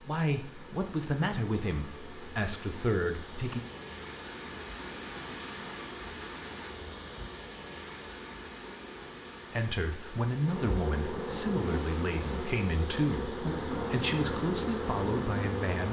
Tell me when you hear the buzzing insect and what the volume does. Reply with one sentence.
The buzzing insect can be heard from 0.0 to 15.8 s, getting louder.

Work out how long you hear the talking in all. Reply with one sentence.
The talking can be heard for 10 seconds in total.